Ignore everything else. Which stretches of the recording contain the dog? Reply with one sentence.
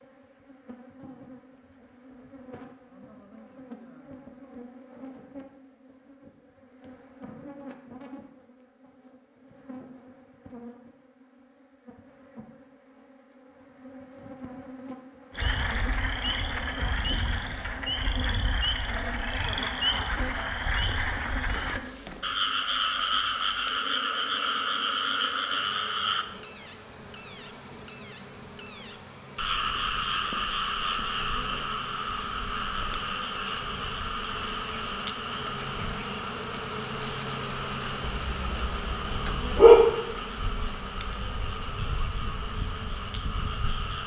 The dog can be heard from 38.0 to 39.8 s.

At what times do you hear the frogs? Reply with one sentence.
The frogs can be heard from 15.3 to 44.0 s.